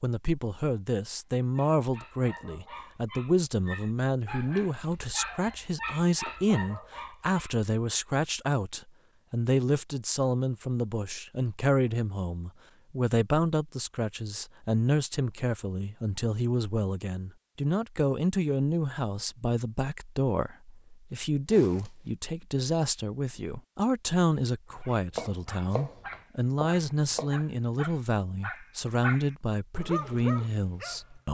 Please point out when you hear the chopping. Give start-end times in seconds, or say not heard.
24.8-27.4.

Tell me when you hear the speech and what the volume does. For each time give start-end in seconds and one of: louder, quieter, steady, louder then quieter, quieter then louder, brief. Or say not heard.
0.0-31.2 steady.